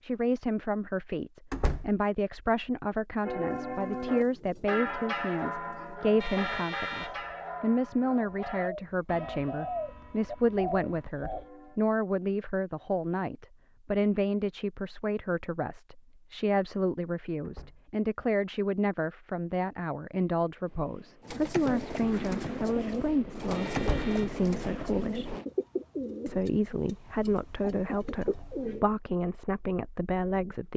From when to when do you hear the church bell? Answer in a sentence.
You can hear the church bell from 3.2 to 11.8 s.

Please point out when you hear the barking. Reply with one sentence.
The barking can't be heard in this clip.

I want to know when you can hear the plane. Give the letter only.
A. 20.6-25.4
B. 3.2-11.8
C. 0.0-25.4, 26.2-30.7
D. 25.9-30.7
A.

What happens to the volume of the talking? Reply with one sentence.
The volume of the talking stays about the same.